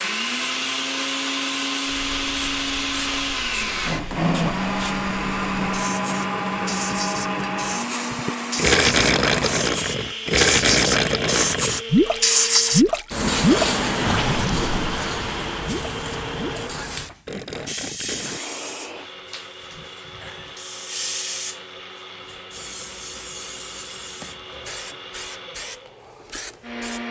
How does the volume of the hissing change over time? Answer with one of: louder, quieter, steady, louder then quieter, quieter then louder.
louder then quieter.